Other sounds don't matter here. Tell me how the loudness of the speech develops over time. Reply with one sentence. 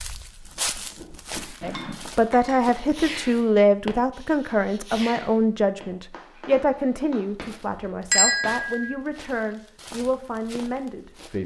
The volume of the speech goes down.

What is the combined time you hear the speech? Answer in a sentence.
The speech can be heard for 10 seconds in total.